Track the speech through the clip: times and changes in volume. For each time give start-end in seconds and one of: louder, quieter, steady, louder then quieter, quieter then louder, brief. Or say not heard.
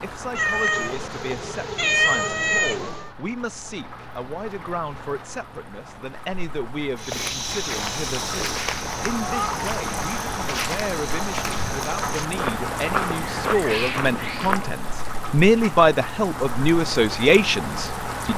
0.0-18.3 louder.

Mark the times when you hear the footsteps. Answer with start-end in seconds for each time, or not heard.
7.0-14.7.